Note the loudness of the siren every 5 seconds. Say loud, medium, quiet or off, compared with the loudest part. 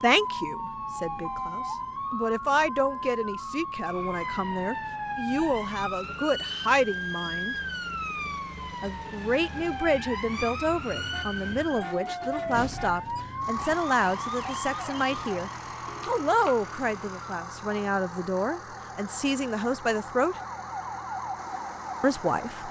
loud, loud, loud, medium, loud.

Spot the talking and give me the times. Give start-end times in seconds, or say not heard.
0.0-7.5, 8.8-20.4, 22.0-22.6.